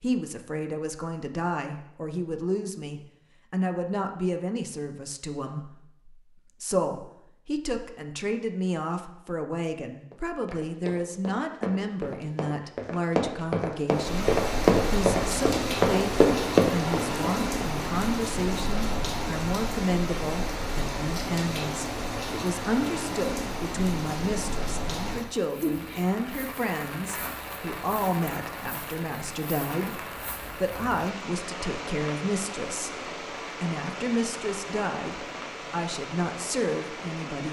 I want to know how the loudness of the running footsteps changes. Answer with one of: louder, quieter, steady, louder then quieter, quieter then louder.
louder.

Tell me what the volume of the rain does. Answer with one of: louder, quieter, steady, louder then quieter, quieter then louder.
quieter.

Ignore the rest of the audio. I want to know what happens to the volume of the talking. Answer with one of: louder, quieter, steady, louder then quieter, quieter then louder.
steady.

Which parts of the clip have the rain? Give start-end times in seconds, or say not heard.
13.9-37.4.